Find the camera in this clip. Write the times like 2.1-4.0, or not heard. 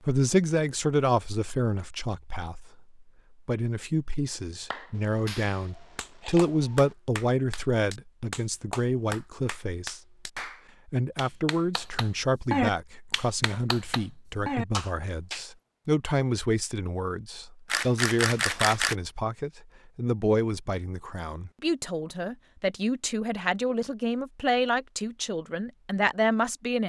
4.9-7.0, 17.6-18.9.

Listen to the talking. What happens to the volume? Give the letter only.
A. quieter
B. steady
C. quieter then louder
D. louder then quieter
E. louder
B.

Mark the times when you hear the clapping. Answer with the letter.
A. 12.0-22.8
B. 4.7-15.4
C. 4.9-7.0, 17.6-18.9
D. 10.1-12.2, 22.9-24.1
B.